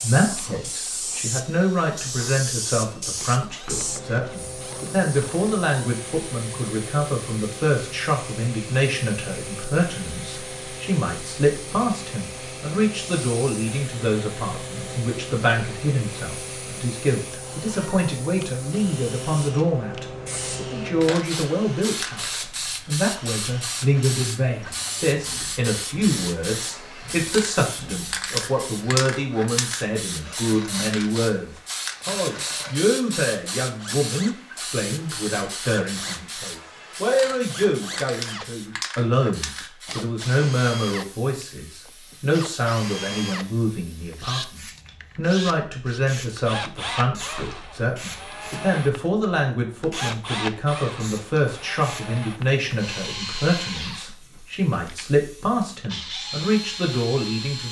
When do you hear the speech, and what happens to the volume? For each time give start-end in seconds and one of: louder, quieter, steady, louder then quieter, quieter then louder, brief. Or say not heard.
0.0-57.6 steady.